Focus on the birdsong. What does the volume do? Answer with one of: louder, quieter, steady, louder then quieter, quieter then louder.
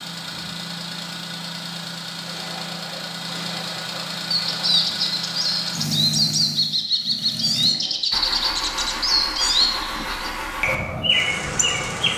steady.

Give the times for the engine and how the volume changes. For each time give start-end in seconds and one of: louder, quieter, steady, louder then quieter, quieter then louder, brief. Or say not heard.
0.0-12.1 steady.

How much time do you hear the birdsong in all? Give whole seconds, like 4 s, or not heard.
8 s.